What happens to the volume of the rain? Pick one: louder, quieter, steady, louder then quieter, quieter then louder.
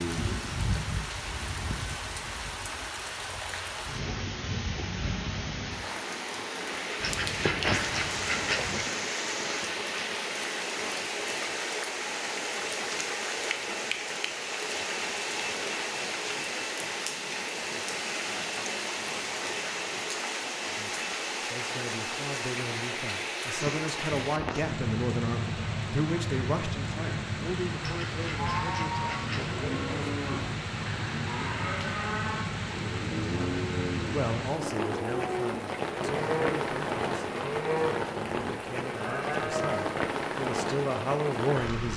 steady.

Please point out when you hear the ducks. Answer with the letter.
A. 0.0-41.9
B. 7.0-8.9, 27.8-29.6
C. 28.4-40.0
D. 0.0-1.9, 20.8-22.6
B.